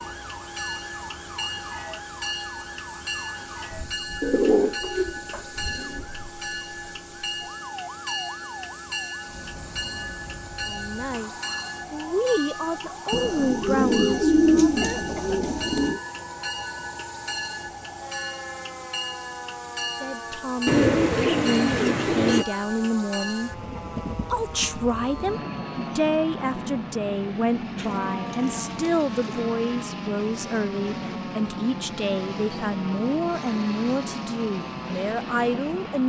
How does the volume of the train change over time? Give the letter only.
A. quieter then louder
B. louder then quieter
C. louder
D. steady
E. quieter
D.